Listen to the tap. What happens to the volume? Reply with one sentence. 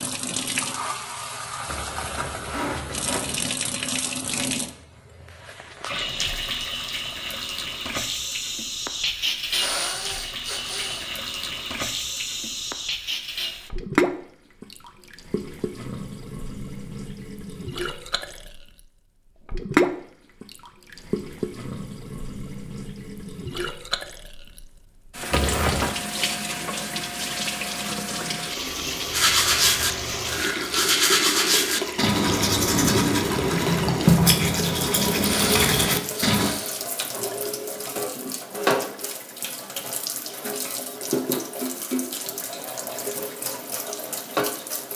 The loudness of the tap stays about the same.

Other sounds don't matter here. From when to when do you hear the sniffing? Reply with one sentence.
The sniffing can be heard from 9.5 to 11.1 s and from 35.2 to 36.8 s.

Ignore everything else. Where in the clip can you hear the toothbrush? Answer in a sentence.
The toothbrush can be heard from 29.1 to 36.5 s.